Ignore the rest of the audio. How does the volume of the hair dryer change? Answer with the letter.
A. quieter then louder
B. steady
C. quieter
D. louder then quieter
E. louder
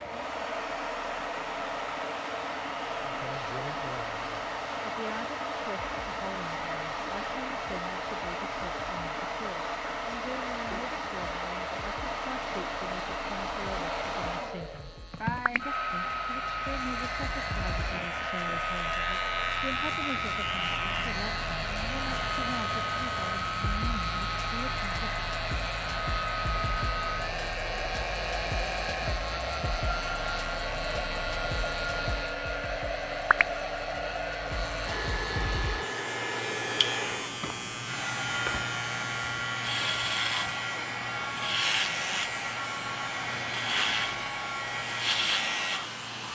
B.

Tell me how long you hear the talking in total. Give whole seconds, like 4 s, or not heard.
22 s.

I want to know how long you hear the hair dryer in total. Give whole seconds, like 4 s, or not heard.
46 s.